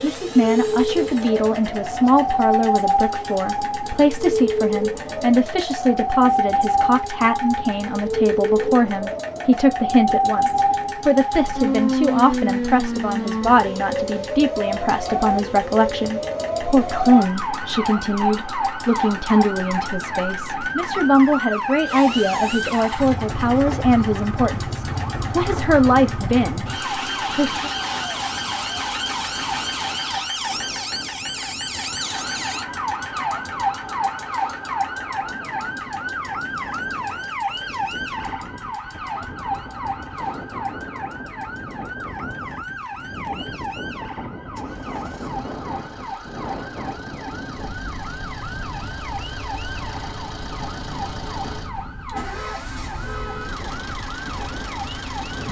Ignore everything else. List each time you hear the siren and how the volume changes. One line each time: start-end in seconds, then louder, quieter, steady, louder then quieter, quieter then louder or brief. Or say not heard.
0.1-55.4 quieter.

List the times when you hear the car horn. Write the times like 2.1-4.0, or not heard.
52.1-53.6.